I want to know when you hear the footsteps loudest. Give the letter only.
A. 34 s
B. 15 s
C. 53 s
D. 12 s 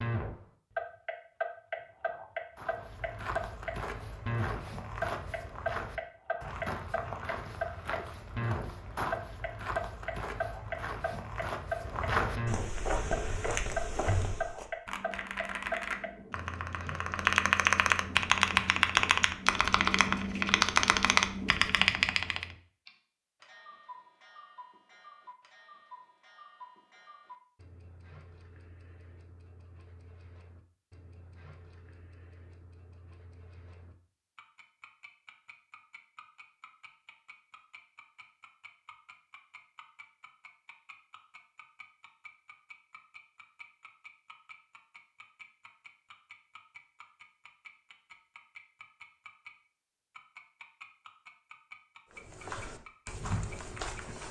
D.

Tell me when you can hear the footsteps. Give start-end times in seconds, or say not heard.
2.5-14.7, 52.1-54.2.